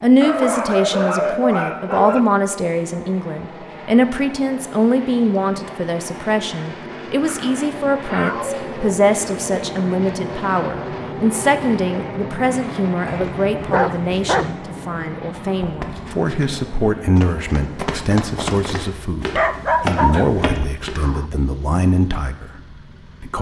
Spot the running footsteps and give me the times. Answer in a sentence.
You can hear the running footsteps from 15.6 to 20.9 s.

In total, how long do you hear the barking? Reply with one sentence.
The barking can be heard for 7 seconds in total.